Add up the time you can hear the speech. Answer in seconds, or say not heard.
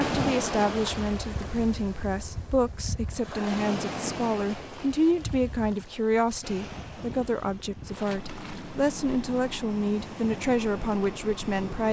12 s.